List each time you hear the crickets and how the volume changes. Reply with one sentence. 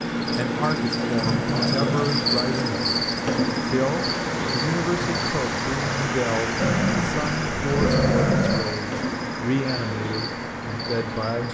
You can hear the crickets from 0.0 to 11.4 s, getting quieter.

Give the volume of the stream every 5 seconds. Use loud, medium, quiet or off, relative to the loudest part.
loud, loud, medium.